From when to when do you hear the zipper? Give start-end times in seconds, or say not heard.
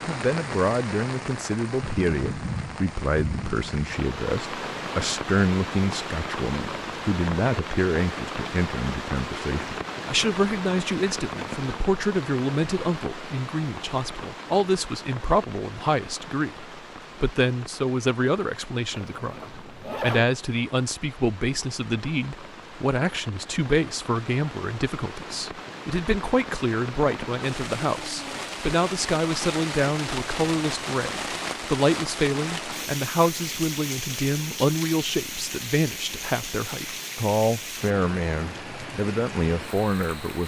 18.9-20.2.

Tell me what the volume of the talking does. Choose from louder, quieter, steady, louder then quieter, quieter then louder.
steady.